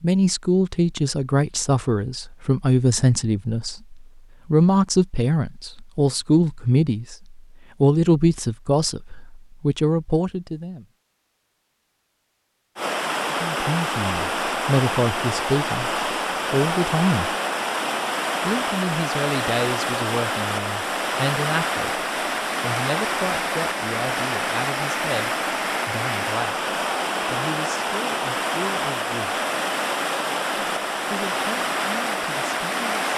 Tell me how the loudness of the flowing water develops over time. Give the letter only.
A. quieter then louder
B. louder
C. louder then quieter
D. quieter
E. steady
E.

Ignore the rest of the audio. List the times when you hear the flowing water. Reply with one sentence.
You can hear the flowing water from 12.8 to 33.1 s.